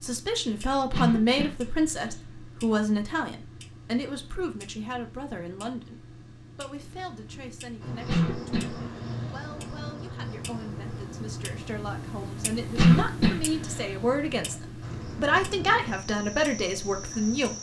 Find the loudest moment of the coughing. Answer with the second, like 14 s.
13 s.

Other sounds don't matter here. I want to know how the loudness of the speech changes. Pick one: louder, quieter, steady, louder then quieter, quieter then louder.
quieter then louder.